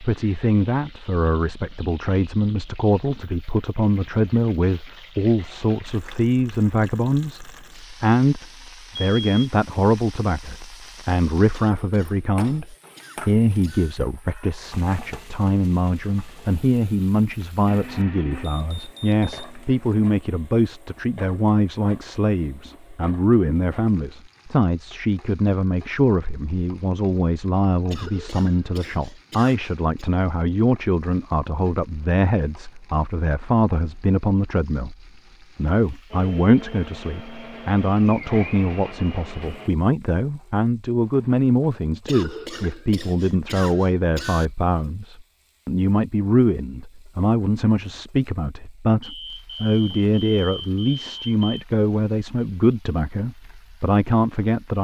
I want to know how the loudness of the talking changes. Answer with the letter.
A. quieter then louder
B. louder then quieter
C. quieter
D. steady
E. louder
D.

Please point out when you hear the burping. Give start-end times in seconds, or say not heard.
not heard.